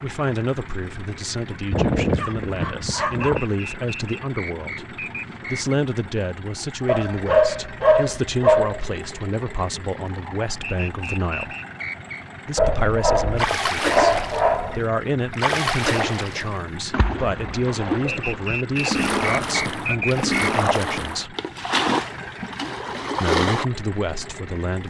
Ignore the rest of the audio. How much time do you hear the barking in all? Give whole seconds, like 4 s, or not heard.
8 s.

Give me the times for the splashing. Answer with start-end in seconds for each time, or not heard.
13.3-14.5, 15.3-23.6.